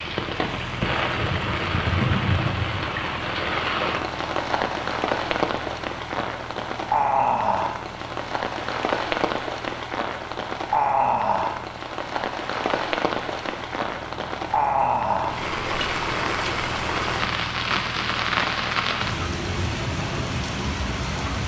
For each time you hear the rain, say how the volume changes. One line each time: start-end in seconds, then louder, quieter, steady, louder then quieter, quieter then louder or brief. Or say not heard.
0.0-21.4 steady.